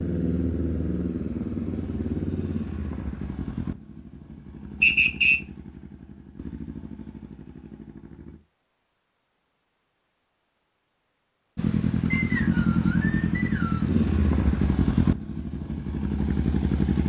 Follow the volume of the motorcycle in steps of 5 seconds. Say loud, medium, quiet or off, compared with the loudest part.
medium, quiet, loud, loud.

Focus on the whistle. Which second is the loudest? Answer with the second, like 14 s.
5 s.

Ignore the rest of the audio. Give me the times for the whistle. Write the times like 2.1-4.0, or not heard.
4.8-5.3, 12.1-13.9.